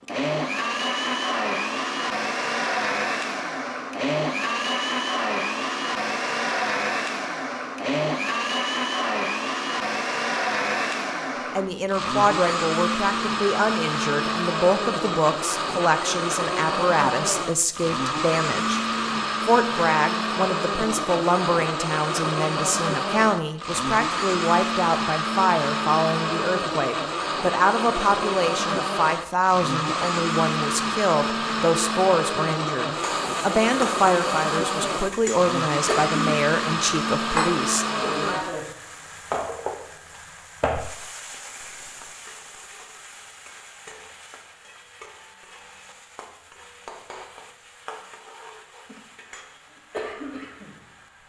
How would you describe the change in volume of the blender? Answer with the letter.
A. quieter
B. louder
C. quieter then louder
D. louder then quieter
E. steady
E.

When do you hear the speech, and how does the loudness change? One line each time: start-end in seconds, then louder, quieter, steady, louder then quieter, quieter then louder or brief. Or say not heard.
11.5-18.8 steady
19.4-37.9 steady.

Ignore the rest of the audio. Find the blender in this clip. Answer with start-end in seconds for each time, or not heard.
0.0-38.5.